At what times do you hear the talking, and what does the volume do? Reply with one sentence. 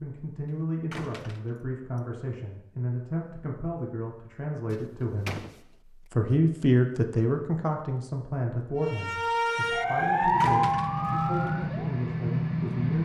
You can hear the talking from 0.0 to 12.9 s, getting louder then quieter.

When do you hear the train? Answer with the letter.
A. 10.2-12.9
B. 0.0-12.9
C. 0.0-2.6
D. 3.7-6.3
A.